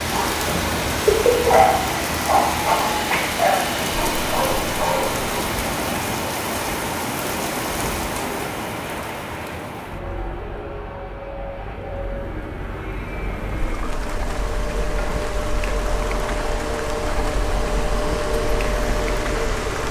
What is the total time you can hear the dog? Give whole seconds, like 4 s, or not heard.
5 s.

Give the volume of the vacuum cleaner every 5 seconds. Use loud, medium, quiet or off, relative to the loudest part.
loud, medium, medium, loud.